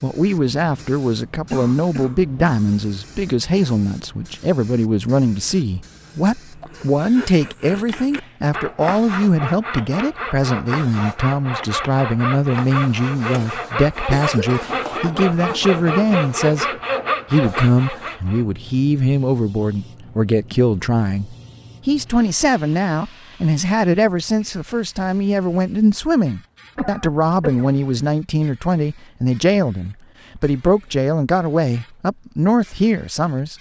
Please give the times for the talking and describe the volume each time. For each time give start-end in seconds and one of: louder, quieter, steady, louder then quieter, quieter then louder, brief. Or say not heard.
0.0-16.6 steady
17.3-33.5 steady.